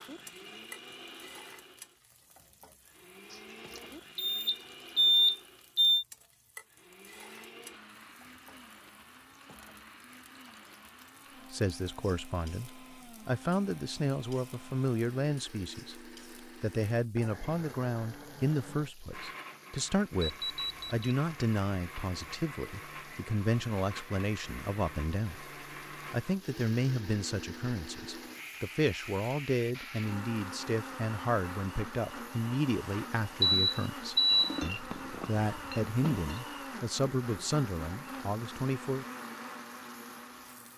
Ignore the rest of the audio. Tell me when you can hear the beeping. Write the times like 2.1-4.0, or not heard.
4.2-6.0, 20.2-21.1, 33.4-34.6.